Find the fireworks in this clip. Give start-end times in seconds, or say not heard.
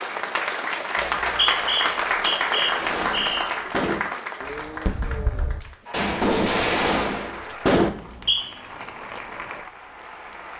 2.8-7.9.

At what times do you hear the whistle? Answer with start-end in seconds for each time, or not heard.
0.9-3.5, 7.9-8.4.